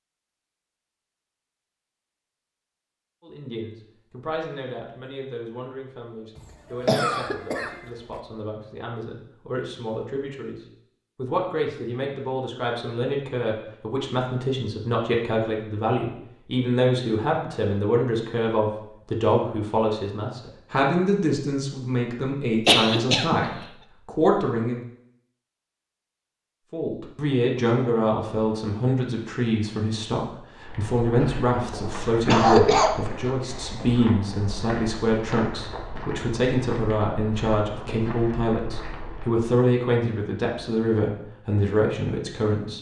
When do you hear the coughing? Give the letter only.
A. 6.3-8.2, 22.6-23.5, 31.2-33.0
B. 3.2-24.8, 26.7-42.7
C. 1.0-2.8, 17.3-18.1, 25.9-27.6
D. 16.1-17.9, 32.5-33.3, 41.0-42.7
A.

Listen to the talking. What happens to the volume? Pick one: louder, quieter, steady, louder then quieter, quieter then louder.
louder.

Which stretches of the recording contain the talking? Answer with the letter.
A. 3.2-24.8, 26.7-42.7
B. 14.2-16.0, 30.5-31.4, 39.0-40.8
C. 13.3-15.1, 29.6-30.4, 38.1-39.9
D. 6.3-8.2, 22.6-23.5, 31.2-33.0
A.